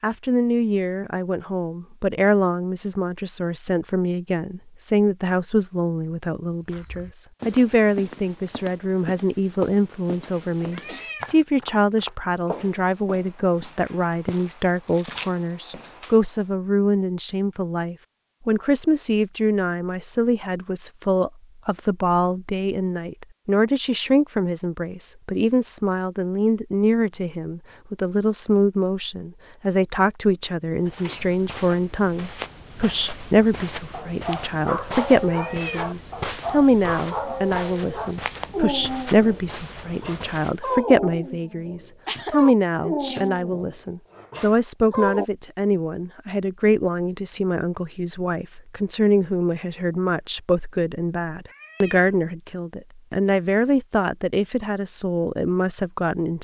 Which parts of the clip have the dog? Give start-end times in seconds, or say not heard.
33.9-45.2.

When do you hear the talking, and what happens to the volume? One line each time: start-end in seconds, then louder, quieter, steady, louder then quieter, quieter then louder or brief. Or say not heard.
0.0-56.3 steady.